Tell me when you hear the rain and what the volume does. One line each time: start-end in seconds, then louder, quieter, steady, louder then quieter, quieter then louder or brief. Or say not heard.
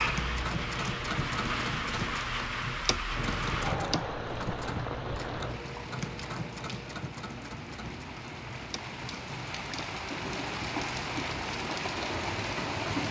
0.0-13.0 quieter then louder.